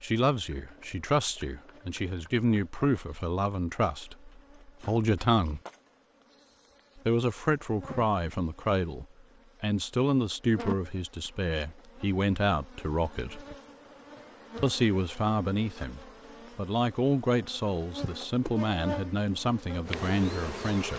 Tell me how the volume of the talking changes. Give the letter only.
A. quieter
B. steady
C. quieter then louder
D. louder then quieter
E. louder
B.